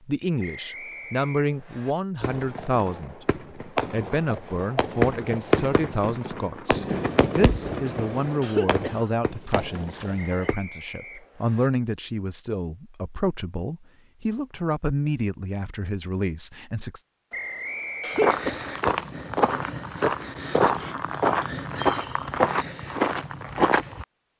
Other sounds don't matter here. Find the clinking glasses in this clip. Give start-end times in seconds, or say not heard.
not heard.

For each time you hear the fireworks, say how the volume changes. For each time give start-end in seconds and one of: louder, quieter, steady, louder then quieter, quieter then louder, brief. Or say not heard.
2.2-10.6 louder then quieter.